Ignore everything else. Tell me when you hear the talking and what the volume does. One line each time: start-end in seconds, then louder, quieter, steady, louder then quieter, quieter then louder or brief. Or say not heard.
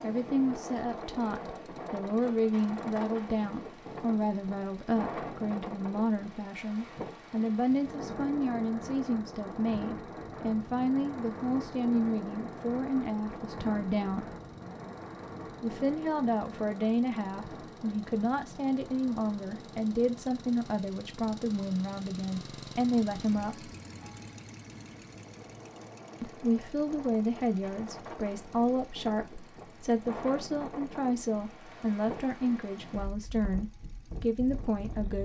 0.0-14.2 steady
15.6-23.7 steady
26.2-35.2 steady.